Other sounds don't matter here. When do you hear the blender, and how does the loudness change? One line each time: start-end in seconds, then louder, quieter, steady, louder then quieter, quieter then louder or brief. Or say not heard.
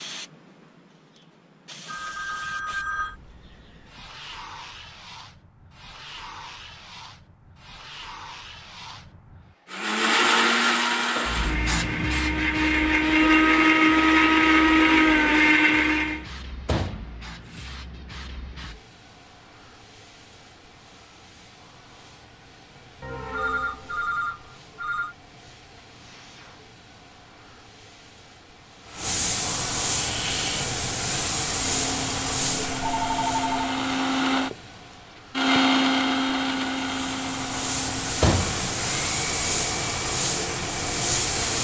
9.7-16.2 quieter then louder
30.0-41.6 louder then quieter.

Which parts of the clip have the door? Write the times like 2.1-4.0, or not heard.
16.6-17.7, 38.2-38.6.